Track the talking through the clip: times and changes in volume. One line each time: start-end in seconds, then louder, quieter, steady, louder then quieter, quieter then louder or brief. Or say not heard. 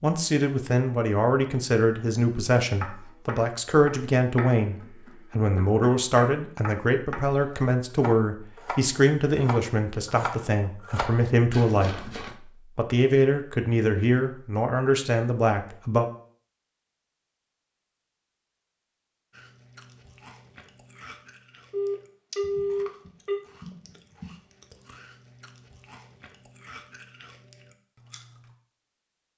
0.0-16.1 steady.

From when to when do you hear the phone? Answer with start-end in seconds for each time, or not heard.
21.7-23.4.